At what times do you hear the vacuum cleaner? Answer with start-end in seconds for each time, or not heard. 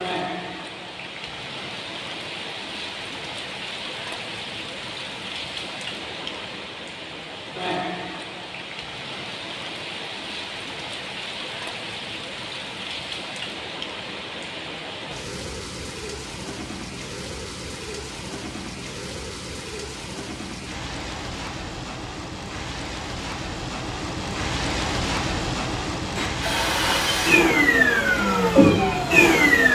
26.1-29.6.